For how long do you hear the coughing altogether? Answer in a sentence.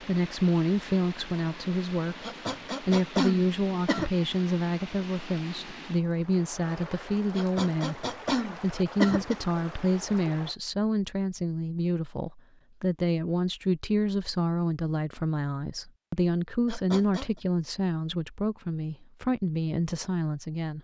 You can hear the coughing for 5 seconds altogether.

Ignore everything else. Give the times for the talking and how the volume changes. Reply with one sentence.
You can hear the talking from 0.0 to 20.7 s, at a steady volume.